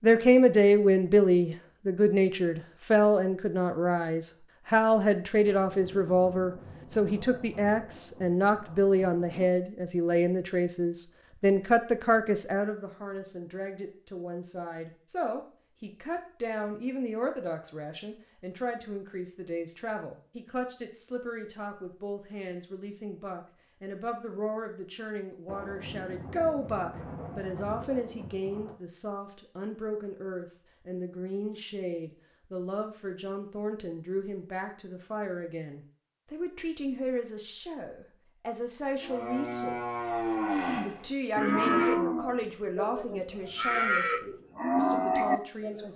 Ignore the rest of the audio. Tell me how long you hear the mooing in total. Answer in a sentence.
The mooing can be heard for 7 seconds in total.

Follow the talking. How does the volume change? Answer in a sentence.
The volume of the talking goes down.